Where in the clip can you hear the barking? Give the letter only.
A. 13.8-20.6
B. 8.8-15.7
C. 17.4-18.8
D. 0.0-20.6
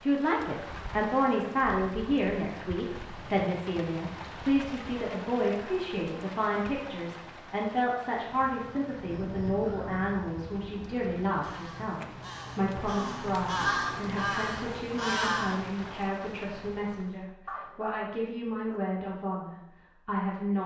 C.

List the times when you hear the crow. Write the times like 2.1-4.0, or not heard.
8.8-15.7.